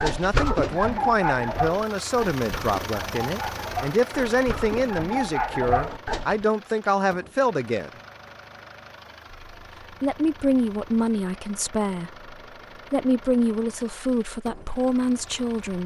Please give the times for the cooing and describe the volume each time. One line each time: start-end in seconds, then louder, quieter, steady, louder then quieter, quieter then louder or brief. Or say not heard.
0.0-6.5 quieter then louder.